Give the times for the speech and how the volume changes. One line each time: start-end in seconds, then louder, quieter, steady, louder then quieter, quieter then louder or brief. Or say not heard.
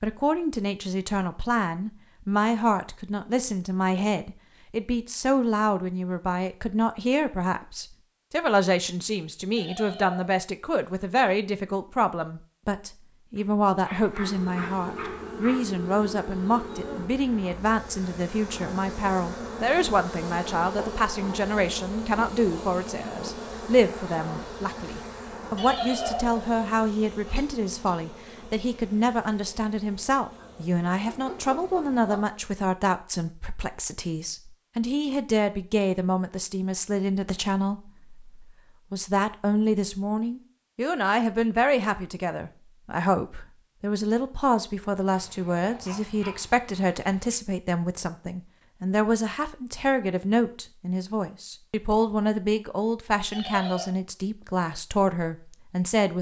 0.0-56.1 steady.